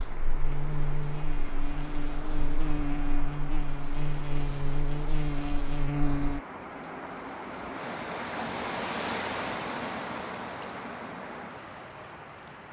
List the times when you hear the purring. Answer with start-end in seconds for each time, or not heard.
not heard.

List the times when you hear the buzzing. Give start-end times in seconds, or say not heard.
0.0-6.4.